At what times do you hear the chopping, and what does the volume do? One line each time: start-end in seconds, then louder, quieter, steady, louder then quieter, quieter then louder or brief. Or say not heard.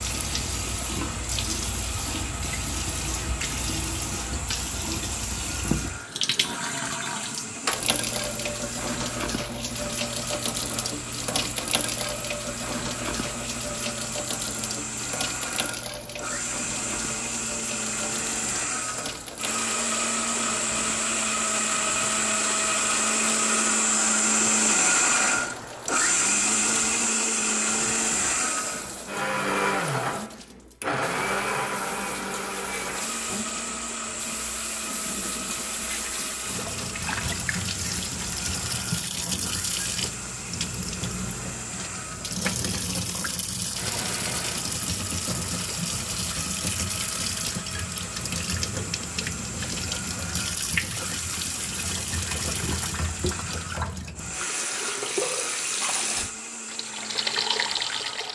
not heard.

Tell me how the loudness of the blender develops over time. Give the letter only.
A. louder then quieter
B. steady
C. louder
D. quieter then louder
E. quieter
A.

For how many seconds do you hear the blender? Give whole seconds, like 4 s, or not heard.
58 s.